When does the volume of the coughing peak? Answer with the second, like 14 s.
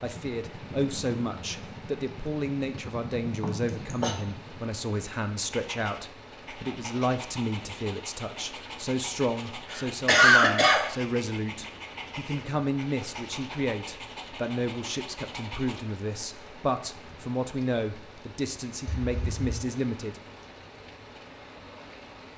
10 s.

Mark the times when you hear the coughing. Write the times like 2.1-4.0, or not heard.
3.4-4.2, 9.7-10.8, 18.9-19.6.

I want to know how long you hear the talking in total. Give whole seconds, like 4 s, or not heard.
20 s.